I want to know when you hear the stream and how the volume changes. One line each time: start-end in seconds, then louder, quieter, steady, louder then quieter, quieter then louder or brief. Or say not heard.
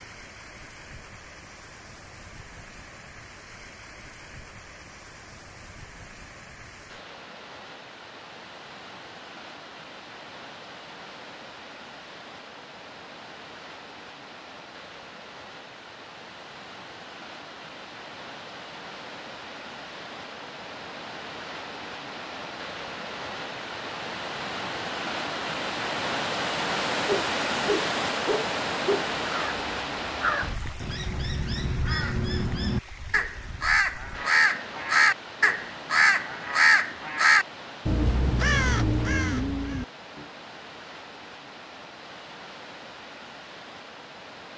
0.0-44.5 louder then quieter.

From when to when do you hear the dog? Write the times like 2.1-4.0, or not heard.
27.1-29.1.